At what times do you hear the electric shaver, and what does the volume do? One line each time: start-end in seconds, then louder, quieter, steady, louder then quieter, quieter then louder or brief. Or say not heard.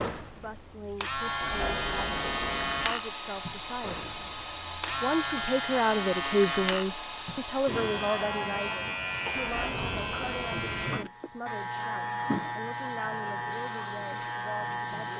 0.0-15.1 steady.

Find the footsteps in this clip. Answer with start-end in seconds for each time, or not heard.
not heard.